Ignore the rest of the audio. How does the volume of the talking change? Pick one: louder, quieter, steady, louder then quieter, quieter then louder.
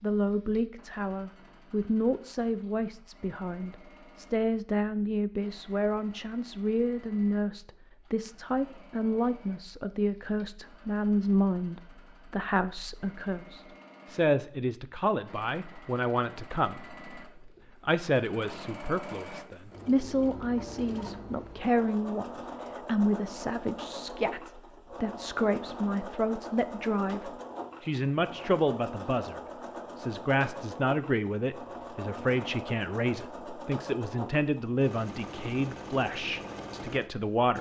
steady.